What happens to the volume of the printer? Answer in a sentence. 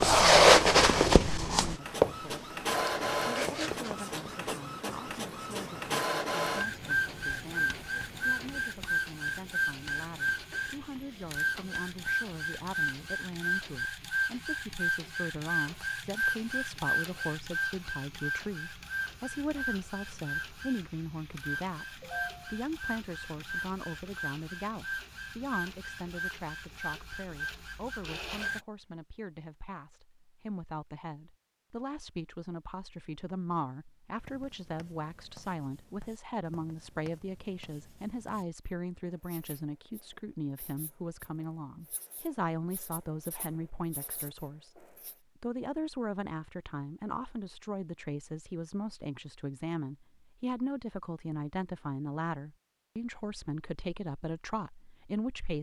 The volume of the printer goes down.